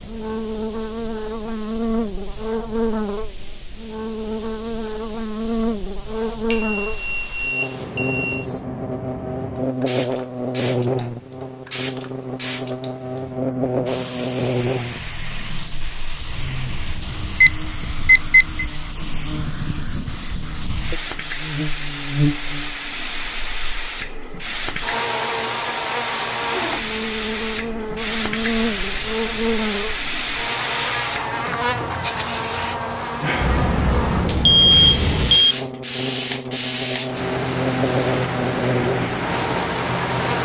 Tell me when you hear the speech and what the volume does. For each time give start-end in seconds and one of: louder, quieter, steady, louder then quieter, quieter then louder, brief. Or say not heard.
not heard.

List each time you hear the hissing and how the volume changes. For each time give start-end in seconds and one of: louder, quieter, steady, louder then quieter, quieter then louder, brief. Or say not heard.
0.0-40.3 louder.